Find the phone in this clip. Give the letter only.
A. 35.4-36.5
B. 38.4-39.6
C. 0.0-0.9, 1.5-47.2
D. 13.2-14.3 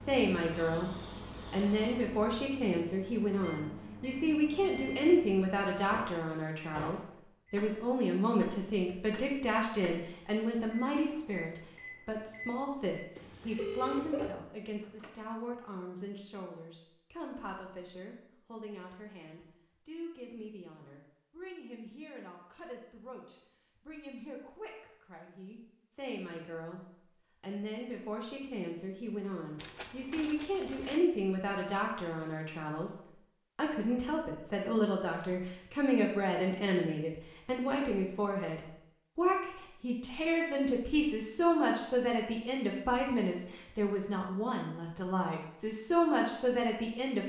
D.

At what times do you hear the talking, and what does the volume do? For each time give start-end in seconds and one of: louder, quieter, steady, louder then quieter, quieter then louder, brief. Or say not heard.
0.0-0.9 brief
1.5-47.2 quieter then louder.